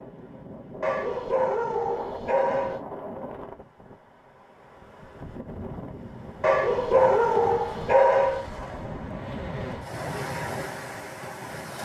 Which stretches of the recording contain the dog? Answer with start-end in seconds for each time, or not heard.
0.8-2.8, 6.4-8.5.